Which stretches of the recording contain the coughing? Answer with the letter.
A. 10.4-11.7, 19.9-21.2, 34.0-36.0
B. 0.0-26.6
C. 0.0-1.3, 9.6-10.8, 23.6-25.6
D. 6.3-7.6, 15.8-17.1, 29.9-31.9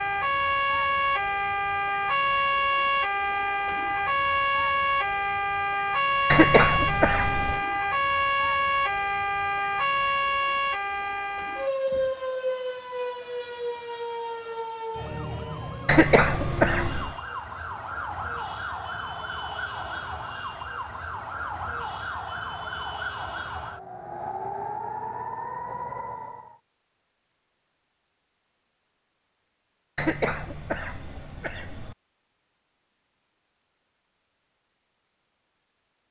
D.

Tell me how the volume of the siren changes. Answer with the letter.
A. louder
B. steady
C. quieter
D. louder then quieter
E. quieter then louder
C.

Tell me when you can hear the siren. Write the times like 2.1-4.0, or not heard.
0.0-26.6.